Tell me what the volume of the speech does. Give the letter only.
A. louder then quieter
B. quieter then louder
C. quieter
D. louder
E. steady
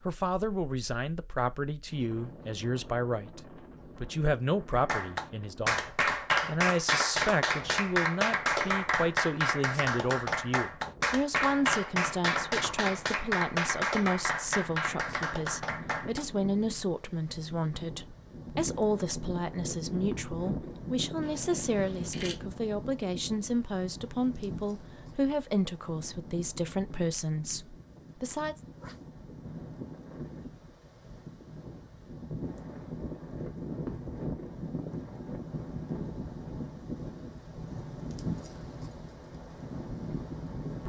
E.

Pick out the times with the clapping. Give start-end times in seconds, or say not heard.
4.7-16.2.